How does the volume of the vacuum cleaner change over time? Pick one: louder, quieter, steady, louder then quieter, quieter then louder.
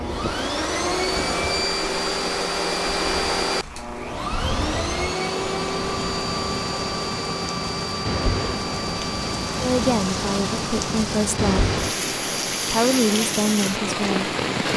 quieter.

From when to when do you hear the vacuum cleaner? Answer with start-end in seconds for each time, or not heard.
0.0-14.7.